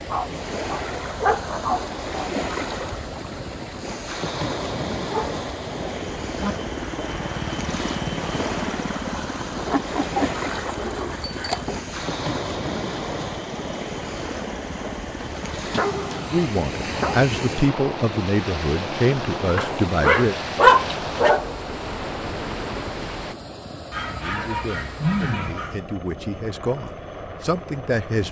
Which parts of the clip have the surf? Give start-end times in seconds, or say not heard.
0.0-23.4.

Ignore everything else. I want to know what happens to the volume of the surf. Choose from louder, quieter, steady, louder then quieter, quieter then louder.
steady.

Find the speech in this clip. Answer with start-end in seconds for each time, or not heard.
16.3-20.4, 24.1-28.2.